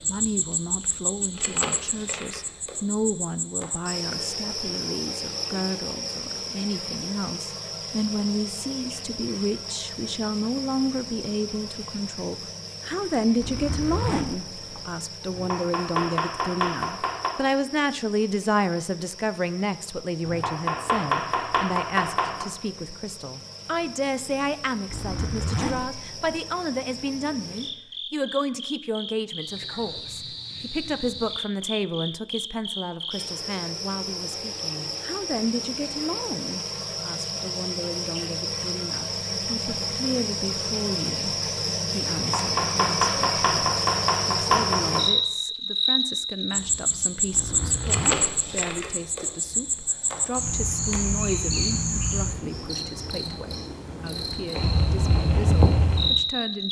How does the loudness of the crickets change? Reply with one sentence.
The volume of the crickets goes down, then up.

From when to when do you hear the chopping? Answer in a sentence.
You can hear the chopping from 15.3 to 17.3 s, from 20.2 to 22.4 s and from 42.1 to 45.0 s.